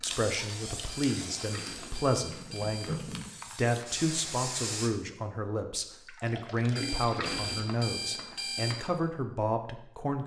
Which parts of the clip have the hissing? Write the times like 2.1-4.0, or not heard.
0.0-5.0.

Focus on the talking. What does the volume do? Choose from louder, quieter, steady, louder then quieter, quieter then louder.
steady.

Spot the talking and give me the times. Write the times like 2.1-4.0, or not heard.
0.0-10.2.